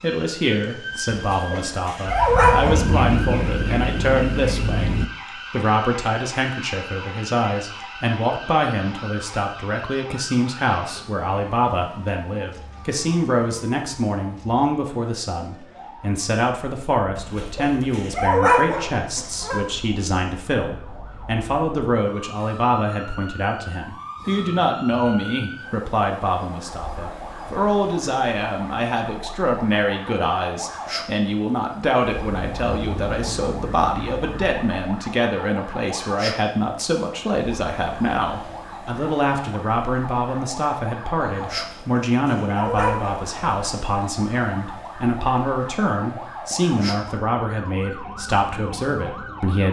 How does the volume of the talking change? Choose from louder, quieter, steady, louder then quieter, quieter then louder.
steady.